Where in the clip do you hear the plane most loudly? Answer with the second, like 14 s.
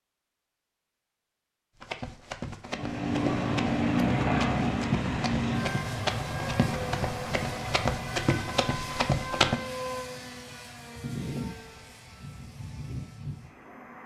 4 s.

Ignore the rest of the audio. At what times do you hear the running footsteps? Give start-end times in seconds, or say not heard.
1.8-9.6.